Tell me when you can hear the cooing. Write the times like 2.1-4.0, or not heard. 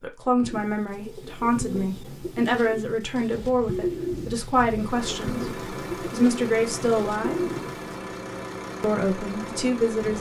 0.5-8.0.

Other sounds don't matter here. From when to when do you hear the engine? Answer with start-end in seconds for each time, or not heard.
4.8-10.1.